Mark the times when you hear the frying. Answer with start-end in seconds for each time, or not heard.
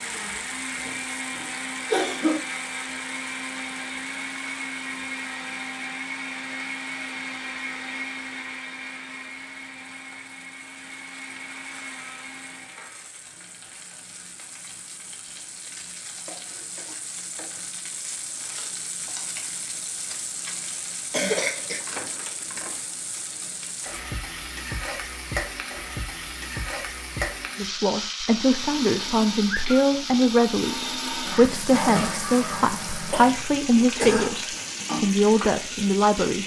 0.0-36.4.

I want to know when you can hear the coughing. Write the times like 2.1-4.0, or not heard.
0.8-2.4, 21.1-21.8, 33.1-34.4.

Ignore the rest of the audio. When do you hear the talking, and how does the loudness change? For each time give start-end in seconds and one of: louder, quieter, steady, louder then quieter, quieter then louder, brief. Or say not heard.
27.6-36.4 steady.